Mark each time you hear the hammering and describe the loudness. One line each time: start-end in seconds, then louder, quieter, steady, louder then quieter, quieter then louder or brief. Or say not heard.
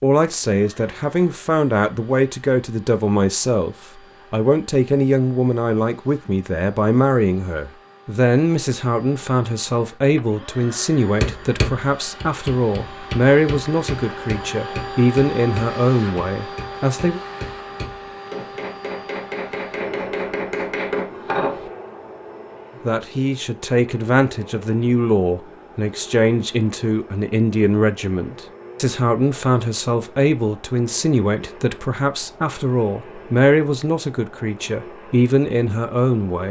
11.2-21.6 quieter then louder.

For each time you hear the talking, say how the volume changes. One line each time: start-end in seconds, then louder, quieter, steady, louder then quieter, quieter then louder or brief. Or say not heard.
0.0-17.2 steady
22.9-36.4 steady.